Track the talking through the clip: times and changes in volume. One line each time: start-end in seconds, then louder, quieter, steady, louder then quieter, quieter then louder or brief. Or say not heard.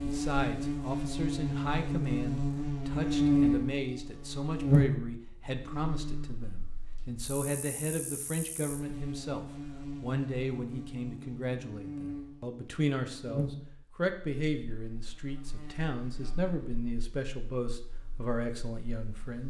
0.0-19.4 steady.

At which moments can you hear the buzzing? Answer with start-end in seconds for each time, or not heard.
0.0-19.4.